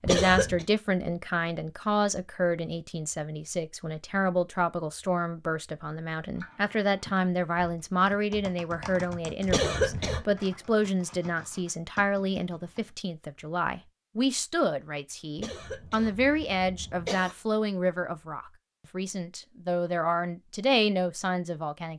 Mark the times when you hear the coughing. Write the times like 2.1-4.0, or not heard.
0.1-0.7, 9.4-10.2, 15.3-17.4.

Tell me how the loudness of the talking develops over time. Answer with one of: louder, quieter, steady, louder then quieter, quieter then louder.
steady.